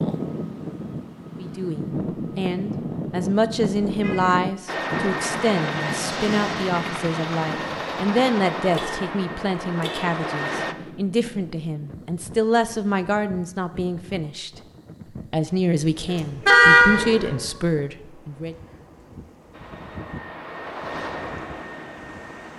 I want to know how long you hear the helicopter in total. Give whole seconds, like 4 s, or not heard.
9 s.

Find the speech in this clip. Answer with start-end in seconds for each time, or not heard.
1.4-14.5, 15.3-18.6.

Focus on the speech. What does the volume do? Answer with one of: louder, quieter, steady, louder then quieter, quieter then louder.
steady.